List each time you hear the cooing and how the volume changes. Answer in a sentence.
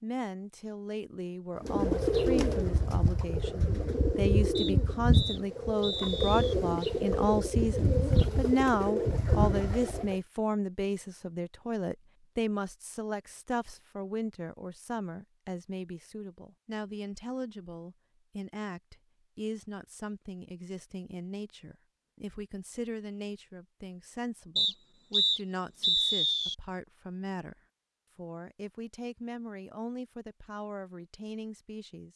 You can hear the cooing from 1.6 to 10.2 s, at a steady volume.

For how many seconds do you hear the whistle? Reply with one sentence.
The whistle can be heard for 4 seconds in total.